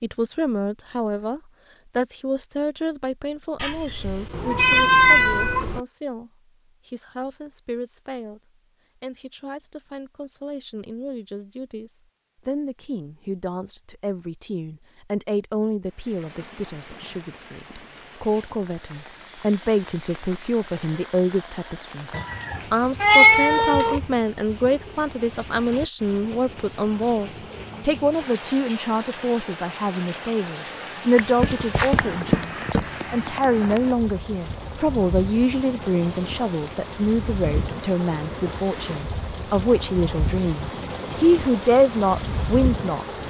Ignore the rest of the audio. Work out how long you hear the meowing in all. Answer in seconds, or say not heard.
6 s.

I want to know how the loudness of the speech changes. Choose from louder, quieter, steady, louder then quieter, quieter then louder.
louder.